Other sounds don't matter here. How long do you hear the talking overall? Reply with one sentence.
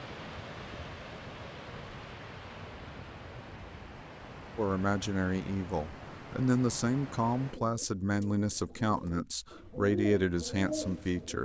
The talking can be heard for 7 seconds in total.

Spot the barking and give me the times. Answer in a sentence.
The barking can't be heard in this clip.